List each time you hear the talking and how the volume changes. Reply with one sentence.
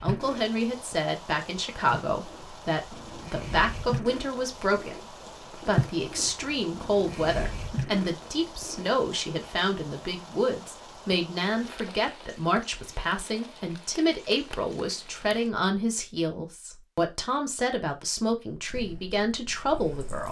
The talking can be heard from 0.0 to 20.2 s, at a steady volume.